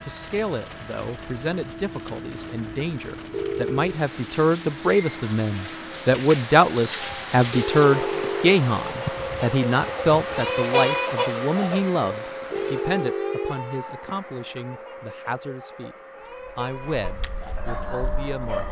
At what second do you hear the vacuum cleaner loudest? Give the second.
11 s.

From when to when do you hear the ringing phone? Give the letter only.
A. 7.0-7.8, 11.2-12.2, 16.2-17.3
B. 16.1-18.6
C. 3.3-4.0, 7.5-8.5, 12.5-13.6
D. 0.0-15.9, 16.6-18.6
C.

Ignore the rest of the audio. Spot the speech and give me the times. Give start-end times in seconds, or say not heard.
0.0-15.9, 16.6-18.6.